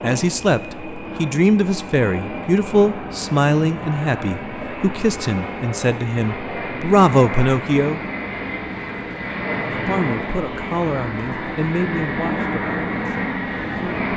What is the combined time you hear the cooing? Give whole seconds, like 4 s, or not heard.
not heard.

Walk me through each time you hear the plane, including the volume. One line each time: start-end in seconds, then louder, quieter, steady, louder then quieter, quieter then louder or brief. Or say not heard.
0.0-14.1 louder.